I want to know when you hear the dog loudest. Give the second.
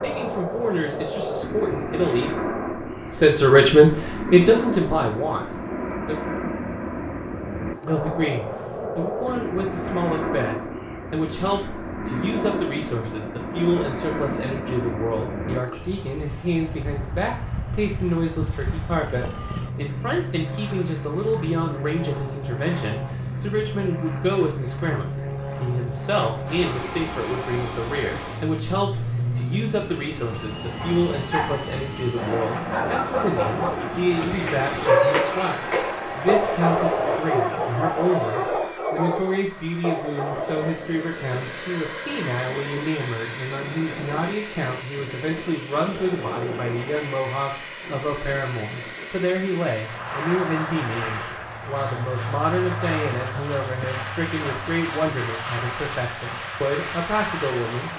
35 s.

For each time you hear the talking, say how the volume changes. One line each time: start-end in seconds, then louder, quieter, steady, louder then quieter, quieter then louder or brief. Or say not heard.
0.0-6.2 louder then quieter
7.8-57.9 steady.